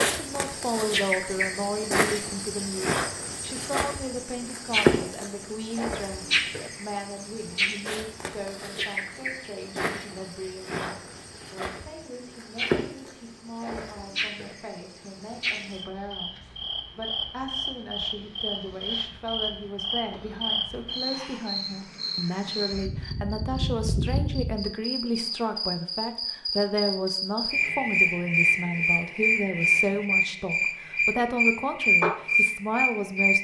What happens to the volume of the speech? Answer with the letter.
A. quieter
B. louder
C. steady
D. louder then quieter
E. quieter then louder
E.